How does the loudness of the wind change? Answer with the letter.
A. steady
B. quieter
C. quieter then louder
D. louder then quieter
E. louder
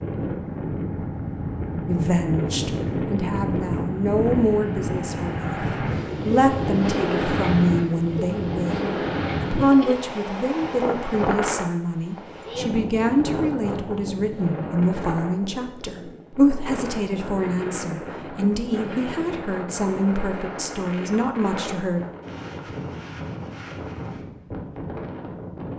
B.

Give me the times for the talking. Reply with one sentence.
You can hear the talking from 1.9 to 22.0 s.